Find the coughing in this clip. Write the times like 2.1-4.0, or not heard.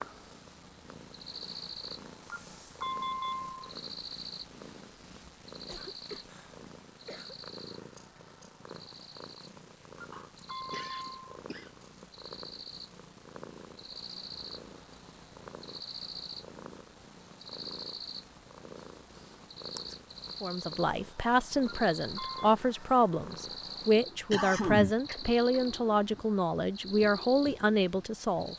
5.7-7.3, 10.1-11.7, 24.3-25.1.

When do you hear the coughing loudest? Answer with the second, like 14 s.
25 s.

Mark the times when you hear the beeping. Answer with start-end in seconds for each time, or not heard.
2.3-3.5, 9.9-11.2, 21.6-22.6.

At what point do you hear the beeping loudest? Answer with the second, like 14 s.
3 s.